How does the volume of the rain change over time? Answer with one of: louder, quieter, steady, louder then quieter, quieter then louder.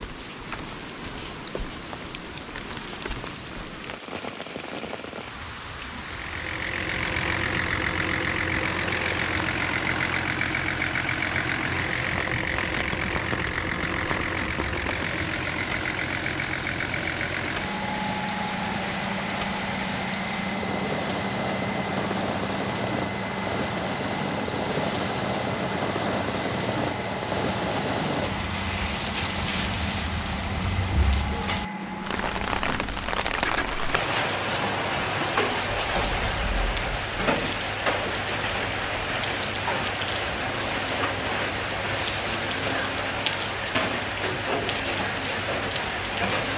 louder.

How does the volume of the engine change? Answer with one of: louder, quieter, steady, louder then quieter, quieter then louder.
quieter.